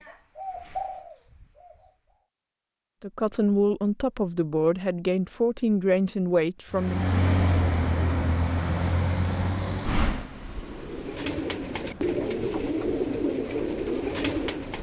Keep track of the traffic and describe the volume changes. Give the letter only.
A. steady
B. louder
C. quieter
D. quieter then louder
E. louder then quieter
C.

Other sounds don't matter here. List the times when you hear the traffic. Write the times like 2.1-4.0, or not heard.
6.7-14.7.